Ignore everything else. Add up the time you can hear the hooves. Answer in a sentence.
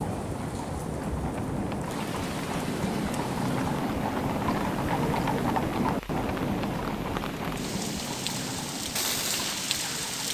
You can hear the hooves for 10 seconds altogether.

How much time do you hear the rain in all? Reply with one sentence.
The rain can be heard for 10 seconds in total.